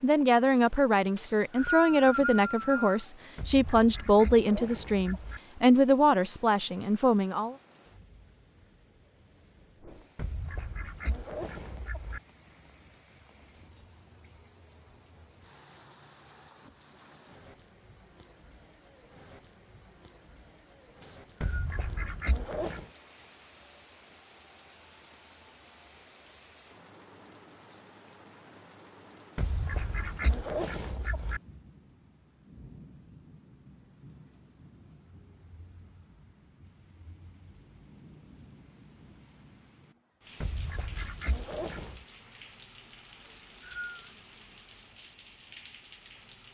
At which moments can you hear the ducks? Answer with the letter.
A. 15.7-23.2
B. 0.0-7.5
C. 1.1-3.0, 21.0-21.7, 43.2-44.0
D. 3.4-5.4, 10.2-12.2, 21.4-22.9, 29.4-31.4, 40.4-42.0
D.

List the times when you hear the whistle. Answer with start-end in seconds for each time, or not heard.
1.1-3.0, 21.0-21.7, 43.2-44.0.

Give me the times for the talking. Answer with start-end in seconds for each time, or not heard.
0.0-7.5.